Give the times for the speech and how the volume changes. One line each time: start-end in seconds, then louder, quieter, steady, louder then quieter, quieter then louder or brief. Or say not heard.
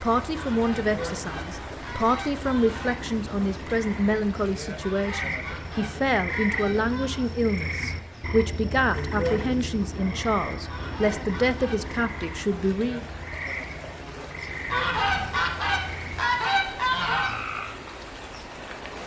0.0-13.1 steady.